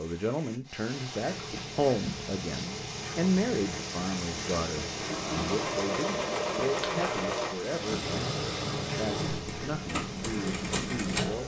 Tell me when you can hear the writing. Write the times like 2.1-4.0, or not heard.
1.1-11.2.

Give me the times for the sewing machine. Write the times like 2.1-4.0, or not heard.
4.8-11.4.